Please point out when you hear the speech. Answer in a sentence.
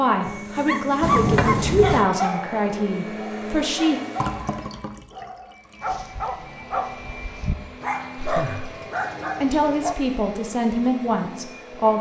You can hear the speech from 0.0 to 4.0 s and from 9.4 to 11.9 s.